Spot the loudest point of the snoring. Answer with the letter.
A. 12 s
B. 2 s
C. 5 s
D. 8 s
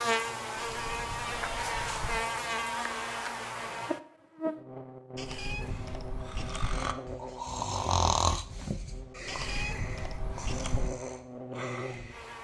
D.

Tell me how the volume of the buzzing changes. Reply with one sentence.
The volume of the buzzing goes down, then up.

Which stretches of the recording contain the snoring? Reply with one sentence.
The snoring can be heard from 5.5 to 12.3 s.